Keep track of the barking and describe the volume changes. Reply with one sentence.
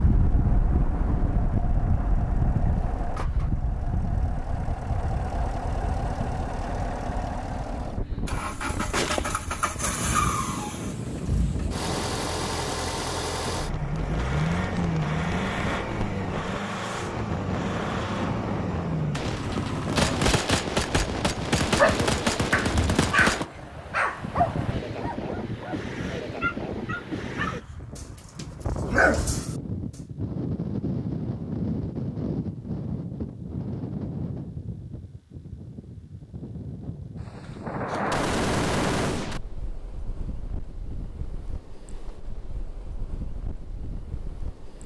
The loudness of the barking goes down, then up.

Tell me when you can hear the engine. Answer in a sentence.
You can hear the engine from 0.0 to 20.3 s.